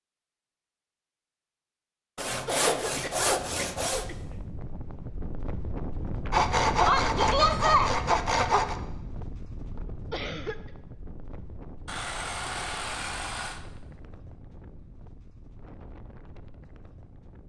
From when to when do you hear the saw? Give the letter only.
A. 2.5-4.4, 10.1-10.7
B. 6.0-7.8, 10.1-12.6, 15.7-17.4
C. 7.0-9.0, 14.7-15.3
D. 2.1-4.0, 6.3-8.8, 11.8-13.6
D.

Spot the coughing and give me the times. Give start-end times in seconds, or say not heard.
2.5-4.4, 10.1-10.7.